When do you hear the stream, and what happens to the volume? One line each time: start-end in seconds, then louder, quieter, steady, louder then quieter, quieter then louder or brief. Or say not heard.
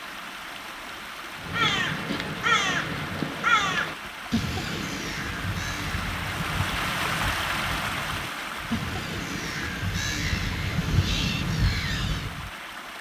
0.0-12.9 louder then quieter.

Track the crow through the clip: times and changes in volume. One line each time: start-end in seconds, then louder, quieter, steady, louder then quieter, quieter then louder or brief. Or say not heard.
1.4-12.4 quieter then louder.